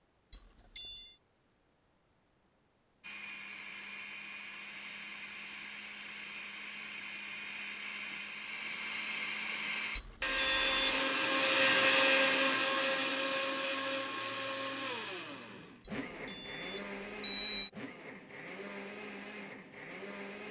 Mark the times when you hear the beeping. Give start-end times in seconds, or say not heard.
0.8-1.2, 10.3-10.9, 16.2-17.7.